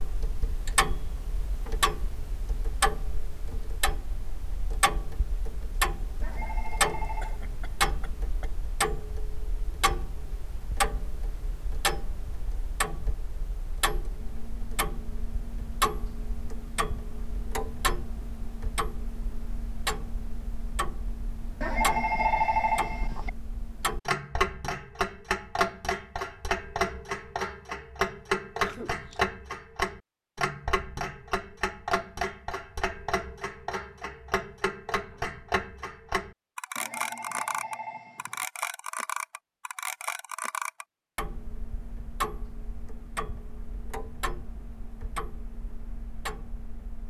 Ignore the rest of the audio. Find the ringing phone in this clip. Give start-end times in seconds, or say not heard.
6.2-7.4, 21.6-23.3, 36.8-38.5.